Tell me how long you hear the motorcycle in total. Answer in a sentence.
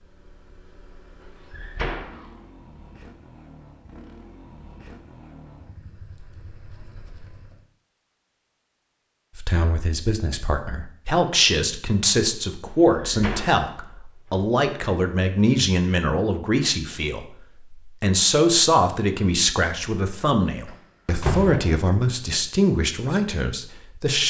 The motorcycle can be heard for 8 seconds in total.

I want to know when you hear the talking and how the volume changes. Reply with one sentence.
The talking can be heard from 9.3 to 24.2 s, at a steady volume.